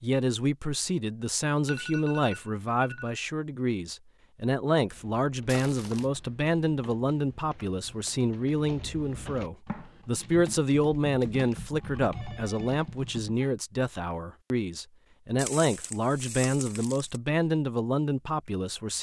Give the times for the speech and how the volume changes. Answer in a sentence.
You can hear the speech from 0.0 to 18.9 s, at a steady volume.